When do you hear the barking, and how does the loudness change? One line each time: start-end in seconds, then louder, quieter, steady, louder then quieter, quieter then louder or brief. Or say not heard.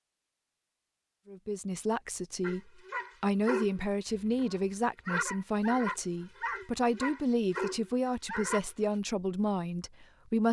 2.4-8.7 quieter then louder.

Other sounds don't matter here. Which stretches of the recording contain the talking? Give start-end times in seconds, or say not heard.
1.2-10.4.